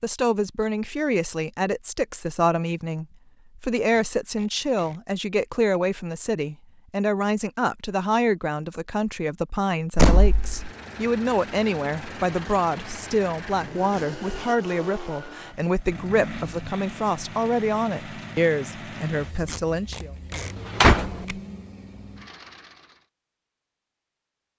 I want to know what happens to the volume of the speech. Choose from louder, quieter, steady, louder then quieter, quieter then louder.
steady.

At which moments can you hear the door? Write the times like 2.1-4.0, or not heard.
9.9-10.7, 20.4-21.2.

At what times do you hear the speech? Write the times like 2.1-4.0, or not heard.
0.0-20.1.